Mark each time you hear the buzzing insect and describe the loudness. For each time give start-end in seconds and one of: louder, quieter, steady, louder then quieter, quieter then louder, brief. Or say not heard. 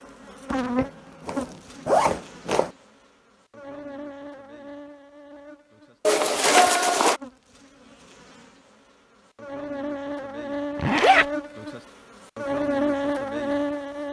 0.0-14.0 quieter then louder.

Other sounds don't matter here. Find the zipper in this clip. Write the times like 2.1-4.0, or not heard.
0.8-2.7, 6.0-7.2, 10.8-11.2.